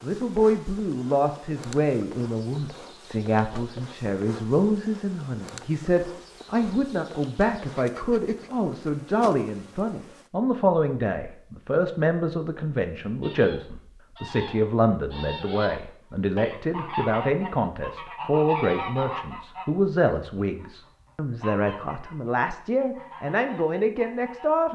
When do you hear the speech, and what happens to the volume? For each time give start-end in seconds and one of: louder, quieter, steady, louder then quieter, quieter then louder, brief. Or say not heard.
0.0-24.7 steady.